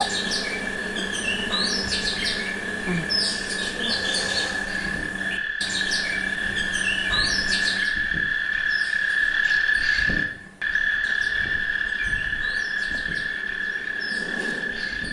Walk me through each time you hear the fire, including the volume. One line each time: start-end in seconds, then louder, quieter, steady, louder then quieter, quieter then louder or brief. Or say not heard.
not heard.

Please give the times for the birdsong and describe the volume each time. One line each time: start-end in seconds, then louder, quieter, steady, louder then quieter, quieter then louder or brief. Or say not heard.
0.0-15.0 quieter.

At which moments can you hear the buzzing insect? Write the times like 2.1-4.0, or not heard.
0.0-4.8, 11.1-15.0.